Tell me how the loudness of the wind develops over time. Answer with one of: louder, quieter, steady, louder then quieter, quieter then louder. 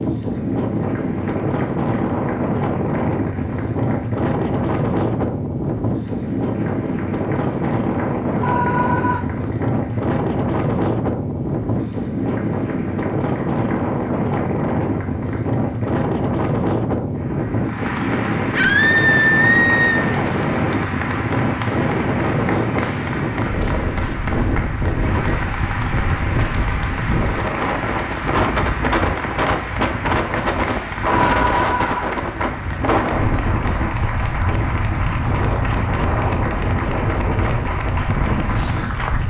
steady.